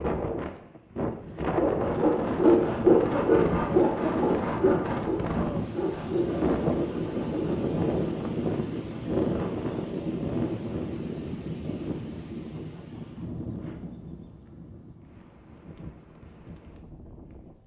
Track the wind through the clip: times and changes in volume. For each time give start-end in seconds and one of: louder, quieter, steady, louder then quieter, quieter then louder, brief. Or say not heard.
0.0-17.6 quieter.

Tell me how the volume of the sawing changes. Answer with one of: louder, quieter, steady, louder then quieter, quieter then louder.
quieter.